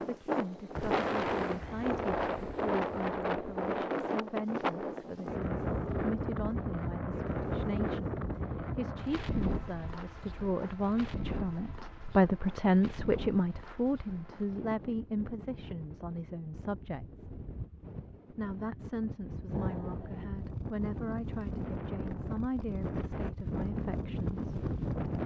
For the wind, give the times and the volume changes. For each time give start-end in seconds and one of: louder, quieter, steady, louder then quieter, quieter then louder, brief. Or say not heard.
0.0-25.2 quieter then louder.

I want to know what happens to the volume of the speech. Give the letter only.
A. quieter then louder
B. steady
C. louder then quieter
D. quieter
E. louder
C.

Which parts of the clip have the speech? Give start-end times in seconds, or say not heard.
0.0-17.2, 18.3-24.4.